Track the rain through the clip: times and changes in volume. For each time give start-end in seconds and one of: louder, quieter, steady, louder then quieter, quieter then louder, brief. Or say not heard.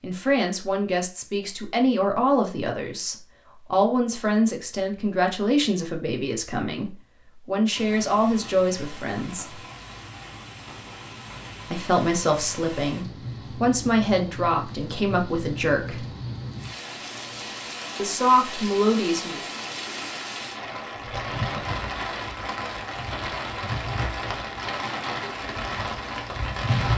7.7-26.9 louder.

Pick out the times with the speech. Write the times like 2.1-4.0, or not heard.
0.0-9.6, 11.7-16.1, 17.9-19.4.